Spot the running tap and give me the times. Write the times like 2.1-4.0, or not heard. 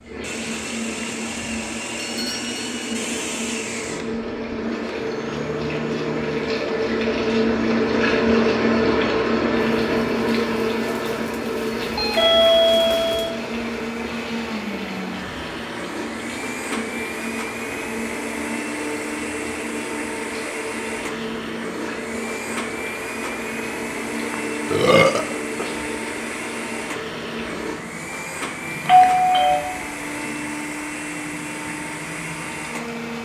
0.0-33.1.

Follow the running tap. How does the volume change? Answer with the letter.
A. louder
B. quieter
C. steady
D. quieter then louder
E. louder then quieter
E.